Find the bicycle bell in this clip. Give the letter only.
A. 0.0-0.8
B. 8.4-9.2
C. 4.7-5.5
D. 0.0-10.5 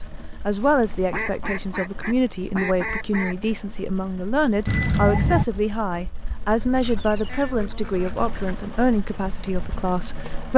C.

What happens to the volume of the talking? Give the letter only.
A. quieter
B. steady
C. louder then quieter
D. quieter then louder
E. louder
B.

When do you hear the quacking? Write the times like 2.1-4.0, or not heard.
0.6-3.5, 6.7-8.7.